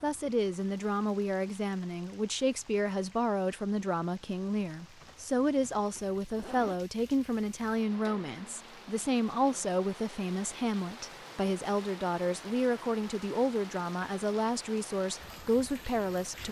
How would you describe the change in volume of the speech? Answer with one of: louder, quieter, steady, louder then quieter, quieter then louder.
steady.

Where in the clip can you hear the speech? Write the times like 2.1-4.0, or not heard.
0.0-16.4.